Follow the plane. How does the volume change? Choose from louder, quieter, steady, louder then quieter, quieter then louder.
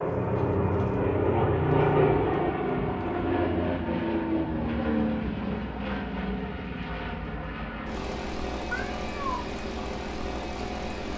quieter.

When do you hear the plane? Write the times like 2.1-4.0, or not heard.
0.0-11.1.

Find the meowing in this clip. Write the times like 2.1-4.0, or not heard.
8.7-9.4.